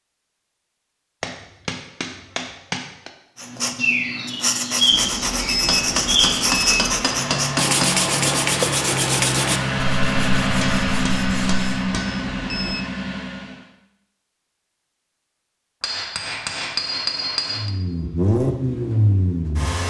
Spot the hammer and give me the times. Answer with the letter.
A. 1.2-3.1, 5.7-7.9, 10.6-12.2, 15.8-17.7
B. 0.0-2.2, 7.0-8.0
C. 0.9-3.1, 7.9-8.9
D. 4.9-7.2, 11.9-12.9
A.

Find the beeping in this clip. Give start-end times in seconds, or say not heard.
4.9-7.2, 11.9-12.9.